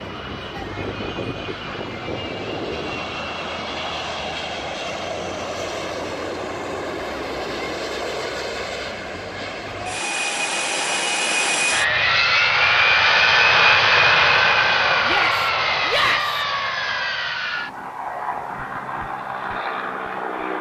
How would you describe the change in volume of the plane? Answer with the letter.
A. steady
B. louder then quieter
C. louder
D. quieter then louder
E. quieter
B.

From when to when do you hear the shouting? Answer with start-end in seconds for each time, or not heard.
15.1-16.4.